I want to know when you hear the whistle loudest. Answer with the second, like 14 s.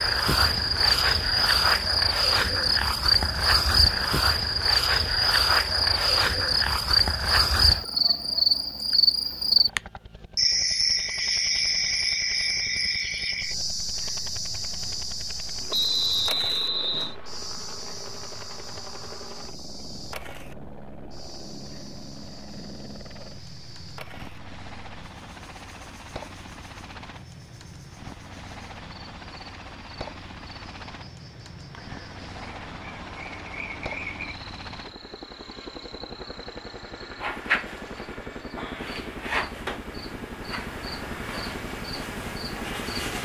16 s.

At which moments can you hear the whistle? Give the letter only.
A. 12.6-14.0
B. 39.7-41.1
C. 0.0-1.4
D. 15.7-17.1
D.